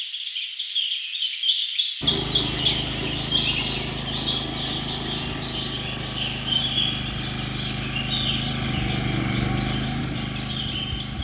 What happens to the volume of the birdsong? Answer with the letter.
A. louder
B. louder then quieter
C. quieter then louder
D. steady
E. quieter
E.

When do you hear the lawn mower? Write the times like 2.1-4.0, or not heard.
2.0-11.1.